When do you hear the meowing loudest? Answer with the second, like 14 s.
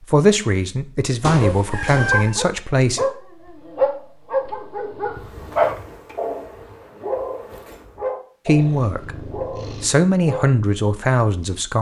2 s.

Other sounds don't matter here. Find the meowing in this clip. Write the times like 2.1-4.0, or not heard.
1.2-2.4, 8.6-10.0.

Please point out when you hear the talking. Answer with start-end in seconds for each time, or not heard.
0.1-3.0, 8.4-9.2, 9.8-11.7.